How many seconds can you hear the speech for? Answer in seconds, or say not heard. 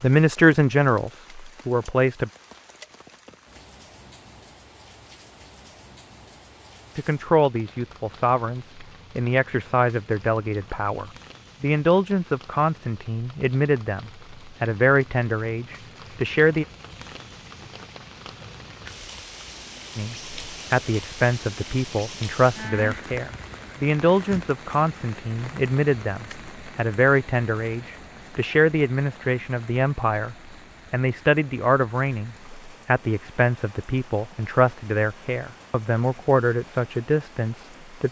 30 s.